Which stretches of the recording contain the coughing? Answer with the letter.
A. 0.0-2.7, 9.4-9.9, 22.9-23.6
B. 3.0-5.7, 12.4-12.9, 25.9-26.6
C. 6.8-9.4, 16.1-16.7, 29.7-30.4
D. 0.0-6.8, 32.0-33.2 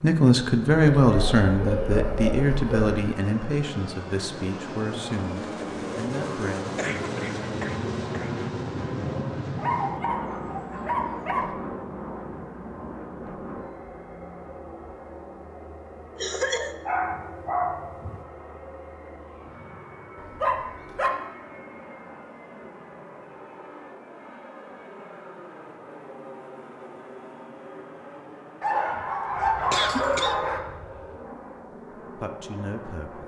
C.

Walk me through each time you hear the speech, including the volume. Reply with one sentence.
The speech can be heard from 0.0 to 6.8 s, getting quieter; and briefly from 32.0 to 33.2 s.